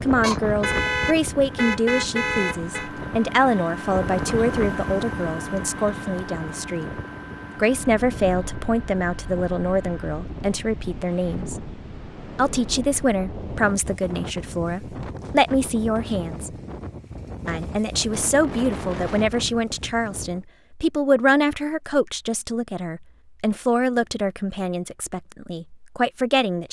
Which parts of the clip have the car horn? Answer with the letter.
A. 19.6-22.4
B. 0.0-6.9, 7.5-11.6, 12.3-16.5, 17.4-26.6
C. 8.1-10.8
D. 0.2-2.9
D.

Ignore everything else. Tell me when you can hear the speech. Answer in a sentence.
You can hear the speech from 0.0 to 6.9 s, from 7.5 to 11.6 s, from 12.3 to 16.5 s and from 17.4 to 26.6 s.